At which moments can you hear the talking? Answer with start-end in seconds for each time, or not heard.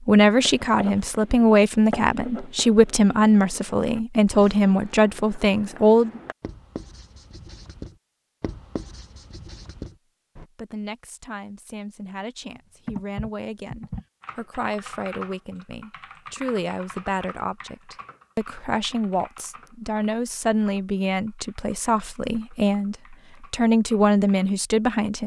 0.1-6.2, 10.4-25.2.